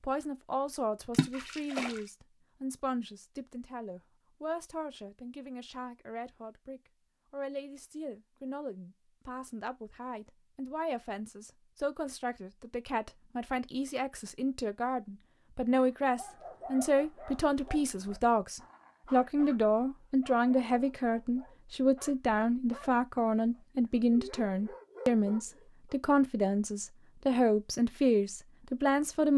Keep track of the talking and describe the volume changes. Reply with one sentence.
The volume of the talking goes up.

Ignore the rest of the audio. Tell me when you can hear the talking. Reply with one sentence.
The talking can be heard from 0.0 to 29.3 s.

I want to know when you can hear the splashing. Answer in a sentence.
The splashing can be heard from 1.1 to 2.0 s.